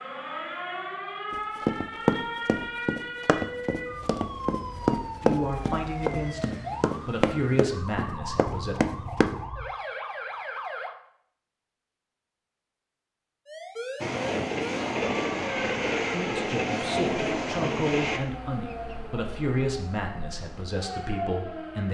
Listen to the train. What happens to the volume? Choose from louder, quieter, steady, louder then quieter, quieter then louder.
steady.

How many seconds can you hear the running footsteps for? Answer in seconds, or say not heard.
8 s.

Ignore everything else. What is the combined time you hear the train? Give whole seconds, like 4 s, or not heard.
4 s.